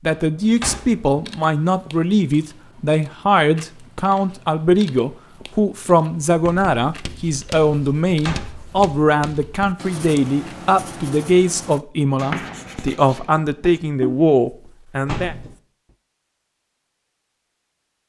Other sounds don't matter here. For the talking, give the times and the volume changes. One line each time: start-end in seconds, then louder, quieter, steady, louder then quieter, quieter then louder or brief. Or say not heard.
0.1-15.3 steady.